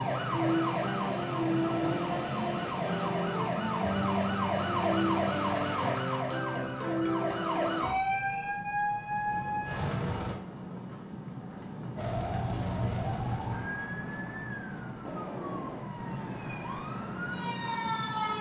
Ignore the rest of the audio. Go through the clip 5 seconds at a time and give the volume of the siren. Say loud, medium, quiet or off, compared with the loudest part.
loud, loud, medium, medium.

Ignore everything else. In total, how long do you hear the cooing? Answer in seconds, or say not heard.
not heard.